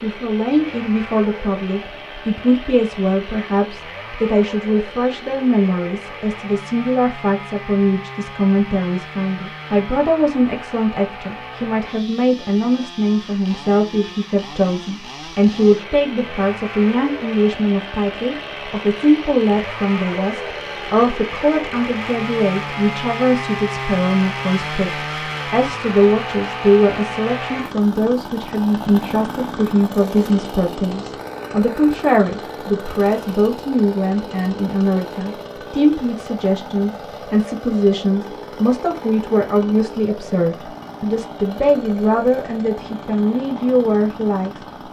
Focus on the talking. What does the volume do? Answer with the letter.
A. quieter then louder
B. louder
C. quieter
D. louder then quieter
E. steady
E.